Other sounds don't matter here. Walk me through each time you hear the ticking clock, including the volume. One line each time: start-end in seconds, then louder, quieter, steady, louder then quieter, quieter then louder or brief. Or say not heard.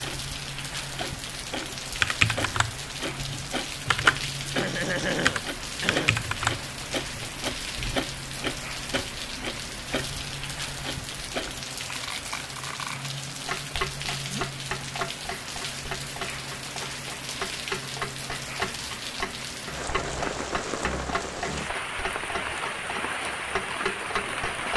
0.0-24.7 steady.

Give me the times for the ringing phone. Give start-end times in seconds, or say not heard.
not heard.